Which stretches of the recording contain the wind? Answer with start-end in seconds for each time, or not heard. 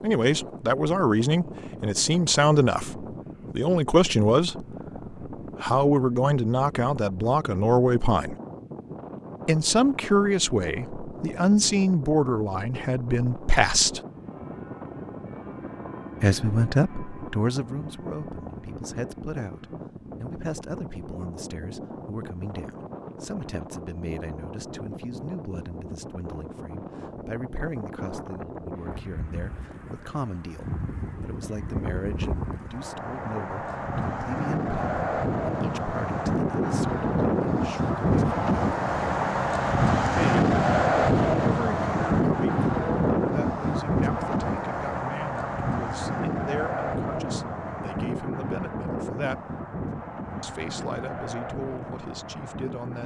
0.0-53.0.